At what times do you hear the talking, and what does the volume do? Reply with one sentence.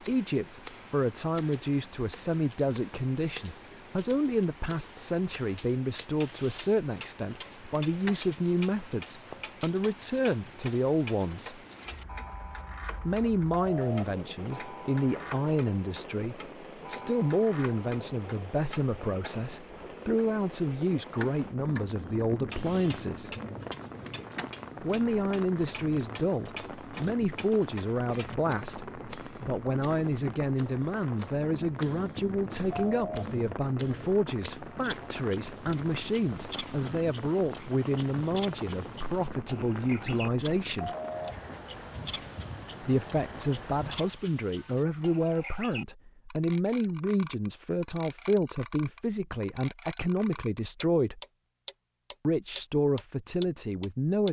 The talking can be heard from 0.1 to 11.6 s, at a steady volume; from 13.1 to 23.3 s, at a steady volume; from 24.8 to 40.9 s, at a steady volume; from 42.8 to 51.2 s, at a steady volume; and briefly from 52.2 to 54.2 s.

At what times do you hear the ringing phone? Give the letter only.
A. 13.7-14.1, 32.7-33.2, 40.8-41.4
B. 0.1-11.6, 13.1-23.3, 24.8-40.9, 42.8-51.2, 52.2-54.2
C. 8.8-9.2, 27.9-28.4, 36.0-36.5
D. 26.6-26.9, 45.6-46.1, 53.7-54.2
A.